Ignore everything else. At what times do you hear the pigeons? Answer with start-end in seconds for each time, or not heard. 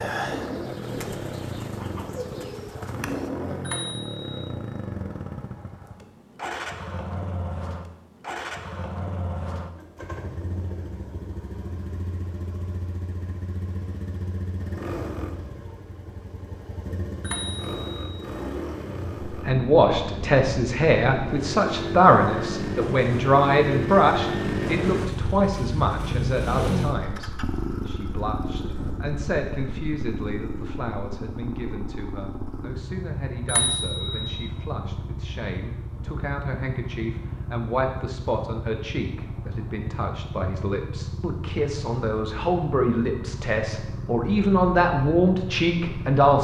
0.0-3.3.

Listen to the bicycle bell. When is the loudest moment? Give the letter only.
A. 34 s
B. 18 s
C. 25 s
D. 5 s
A.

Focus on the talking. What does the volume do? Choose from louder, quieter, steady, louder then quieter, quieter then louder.
quieter then louder.